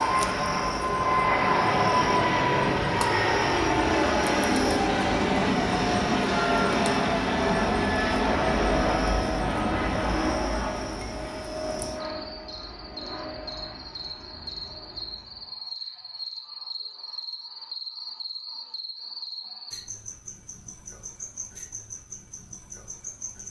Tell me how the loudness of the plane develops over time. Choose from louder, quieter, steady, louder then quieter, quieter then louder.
quieter.